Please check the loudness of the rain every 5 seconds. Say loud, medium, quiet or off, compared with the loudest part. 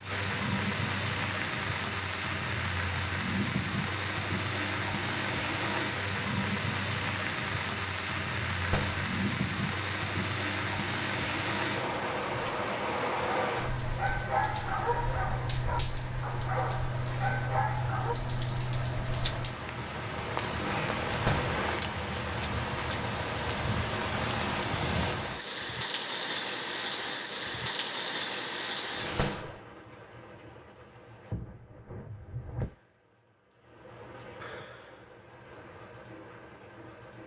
loud, loud, loud, loud, loud, loud, quiet, quiet.